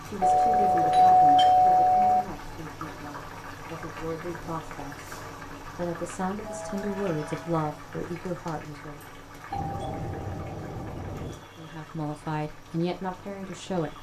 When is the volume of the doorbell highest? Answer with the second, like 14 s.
1 s.